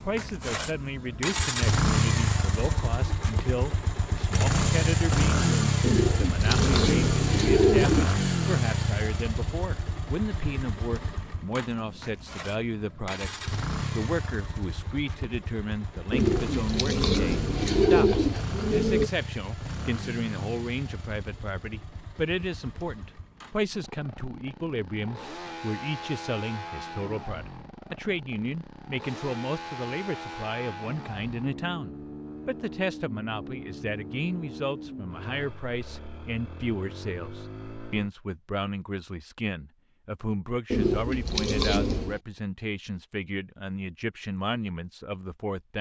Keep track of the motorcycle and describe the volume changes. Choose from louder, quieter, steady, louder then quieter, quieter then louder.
quieter.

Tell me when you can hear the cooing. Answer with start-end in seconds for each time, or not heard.
5.8-8.2, 16.1-19.1, 40.7-42.2.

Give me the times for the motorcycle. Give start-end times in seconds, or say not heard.
0.0-38.1.